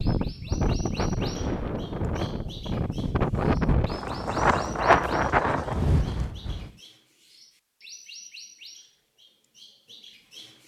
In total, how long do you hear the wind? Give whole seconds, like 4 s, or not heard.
7 s.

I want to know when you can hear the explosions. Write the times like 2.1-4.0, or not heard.
1.1-2.6.